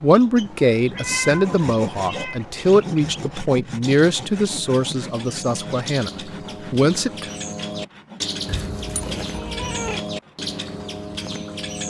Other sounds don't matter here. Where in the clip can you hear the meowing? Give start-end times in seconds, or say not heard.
0.5-2.4, 8.4-10.1.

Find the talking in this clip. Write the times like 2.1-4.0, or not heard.
0.0-7.2.